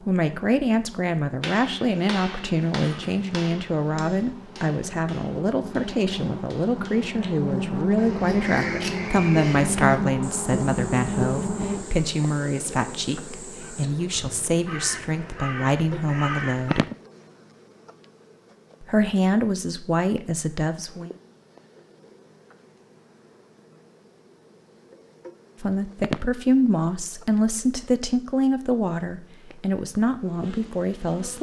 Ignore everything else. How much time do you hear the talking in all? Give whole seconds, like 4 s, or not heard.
25 s.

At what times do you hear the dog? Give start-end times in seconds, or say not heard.
not heard.